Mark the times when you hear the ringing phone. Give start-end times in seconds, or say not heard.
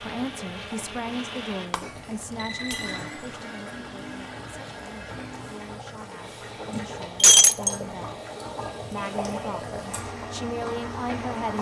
1.9-3.1.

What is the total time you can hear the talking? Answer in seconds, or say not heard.
11 s.